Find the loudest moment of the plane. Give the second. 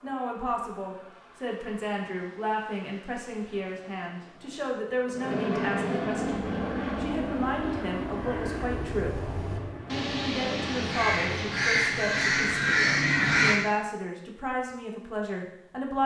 6 s.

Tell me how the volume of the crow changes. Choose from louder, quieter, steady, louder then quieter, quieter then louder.
louder.